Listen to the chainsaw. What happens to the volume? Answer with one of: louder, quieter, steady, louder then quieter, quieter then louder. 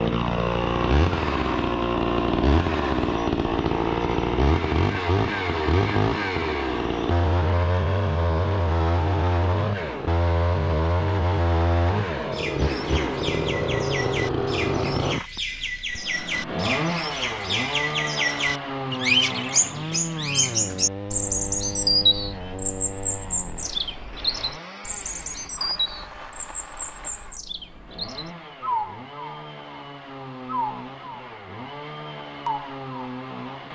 quieter.